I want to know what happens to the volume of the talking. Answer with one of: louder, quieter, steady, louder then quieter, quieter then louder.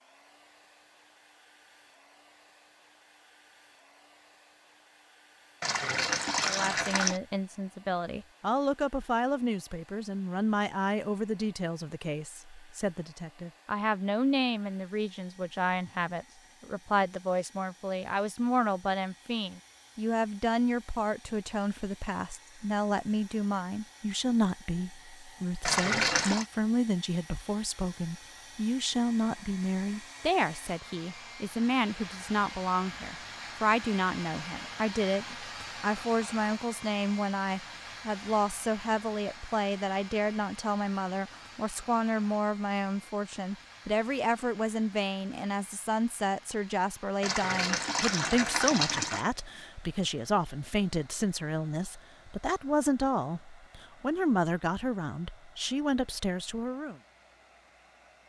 steady.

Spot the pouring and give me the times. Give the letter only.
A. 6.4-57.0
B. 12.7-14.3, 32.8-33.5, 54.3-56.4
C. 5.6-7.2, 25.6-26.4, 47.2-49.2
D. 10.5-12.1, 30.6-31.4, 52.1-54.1
C.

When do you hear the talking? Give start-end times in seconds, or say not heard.
6.4-57.0.